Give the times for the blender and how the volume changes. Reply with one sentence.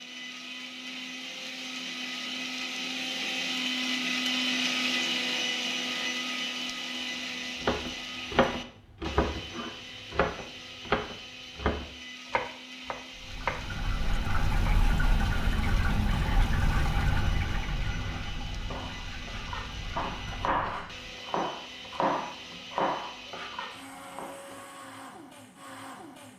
You can hear the blender from 0.0 to 26.3 s, getting quieter.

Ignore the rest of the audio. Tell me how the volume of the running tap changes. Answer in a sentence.
The loudness of the running tap goes down.